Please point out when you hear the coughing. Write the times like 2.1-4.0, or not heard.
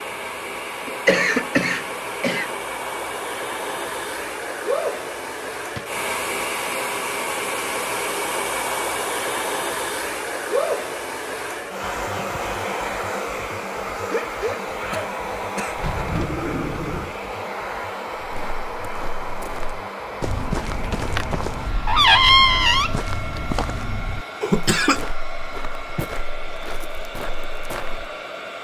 0.8-2.5, 14.0-15.8, 24.4-25.0.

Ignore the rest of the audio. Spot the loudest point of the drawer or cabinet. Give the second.
22 s.